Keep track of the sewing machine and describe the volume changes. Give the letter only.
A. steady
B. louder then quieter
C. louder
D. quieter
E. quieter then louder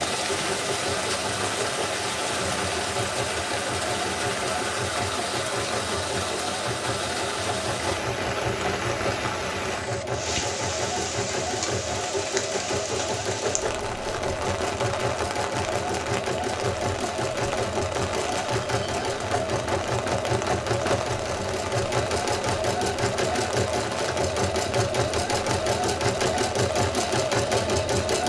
C.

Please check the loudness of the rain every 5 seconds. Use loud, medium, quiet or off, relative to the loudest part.
loud, loud, loud, medium, medium, medium.